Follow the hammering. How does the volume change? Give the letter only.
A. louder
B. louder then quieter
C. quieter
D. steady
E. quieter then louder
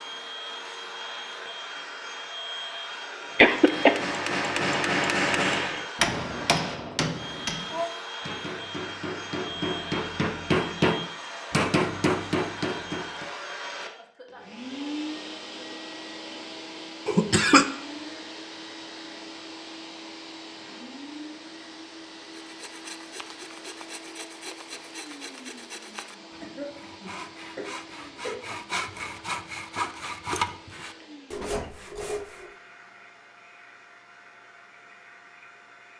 E.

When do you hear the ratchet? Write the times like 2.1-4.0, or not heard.
not heard.